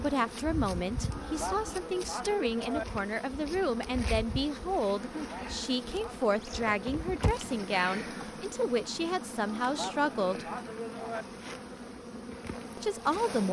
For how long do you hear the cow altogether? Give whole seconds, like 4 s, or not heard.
5 s.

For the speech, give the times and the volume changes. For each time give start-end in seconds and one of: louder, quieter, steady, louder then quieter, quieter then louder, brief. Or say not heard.
0.0-10.4 steady
12.8-13.4 brief.